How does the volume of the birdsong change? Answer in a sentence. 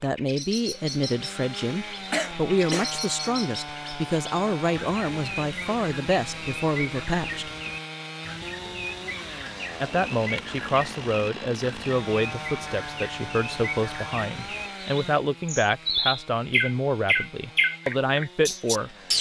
The volume of the birdsong goes up.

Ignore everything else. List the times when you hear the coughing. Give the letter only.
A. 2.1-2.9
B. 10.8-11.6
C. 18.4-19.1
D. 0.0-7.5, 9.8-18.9
A.